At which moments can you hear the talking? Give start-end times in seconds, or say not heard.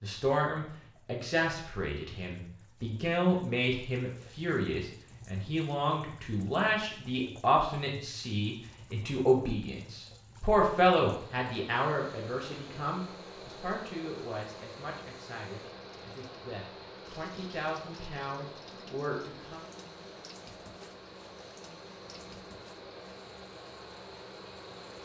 0.0-19.6.